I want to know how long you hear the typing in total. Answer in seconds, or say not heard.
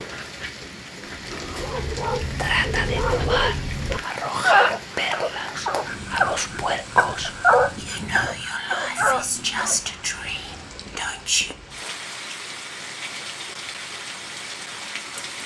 not heard.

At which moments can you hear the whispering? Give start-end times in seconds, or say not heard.
2.4-11.6.